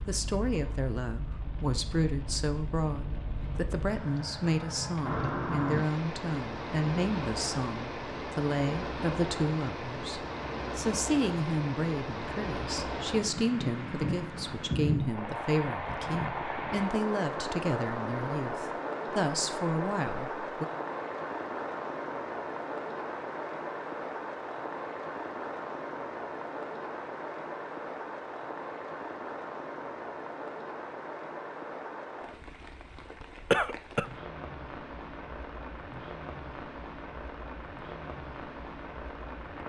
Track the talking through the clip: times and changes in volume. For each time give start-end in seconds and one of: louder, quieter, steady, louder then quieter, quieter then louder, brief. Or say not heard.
0.1-20.6 steady.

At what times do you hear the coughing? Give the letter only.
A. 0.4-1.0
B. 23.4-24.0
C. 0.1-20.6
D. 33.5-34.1
D.